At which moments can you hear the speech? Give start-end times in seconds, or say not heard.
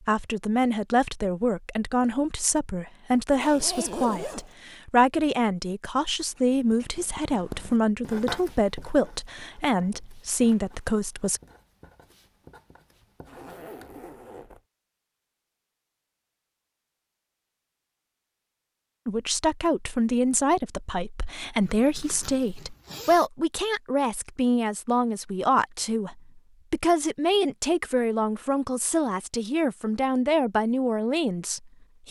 0.1-11.4, 19.1-32.0.